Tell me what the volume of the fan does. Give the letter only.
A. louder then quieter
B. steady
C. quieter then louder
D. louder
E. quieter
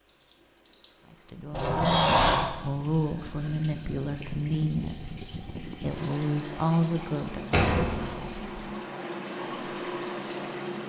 D.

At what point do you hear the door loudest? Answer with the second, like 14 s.
2 s.